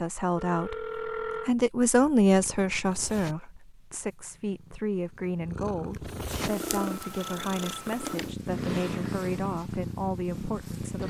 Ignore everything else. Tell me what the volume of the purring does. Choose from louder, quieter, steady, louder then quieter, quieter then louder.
quieter then louder.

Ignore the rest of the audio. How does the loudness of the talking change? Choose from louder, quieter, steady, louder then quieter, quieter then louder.
quieter.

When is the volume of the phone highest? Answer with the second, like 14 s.
1 s.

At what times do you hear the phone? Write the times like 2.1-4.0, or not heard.
0.3-1.5, 6.6-8.2.